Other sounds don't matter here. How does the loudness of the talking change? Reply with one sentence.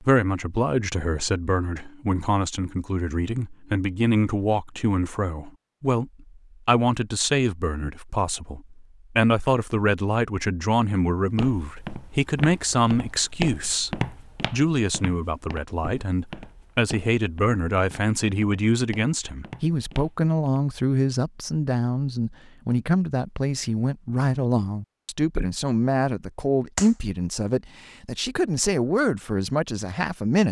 The loudness of the talking stays about the same.